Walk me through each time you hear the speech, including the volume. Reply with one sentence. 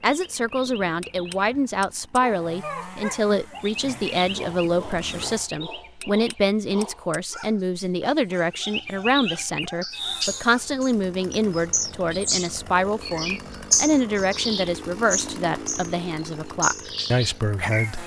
You can hear the speech from 0.0 to 18.0 s, at a steady volume.